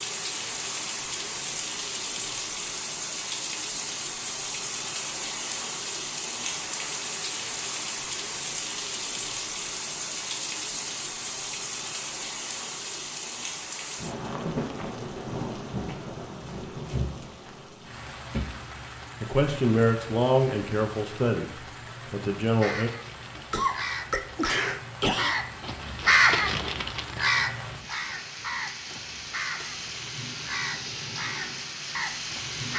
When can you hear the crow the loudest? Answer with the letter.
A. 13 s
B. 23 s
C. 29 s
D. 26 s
D.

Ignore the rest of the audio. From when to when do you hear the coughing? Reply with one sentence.
You can hear the coughing from 23.4 to 25.4 s.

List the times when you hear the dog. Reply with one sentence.
The dog can't be heard in this clip.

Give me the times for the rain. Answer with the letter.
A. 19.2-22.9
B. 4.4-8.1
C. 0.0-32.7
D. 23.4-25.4
C.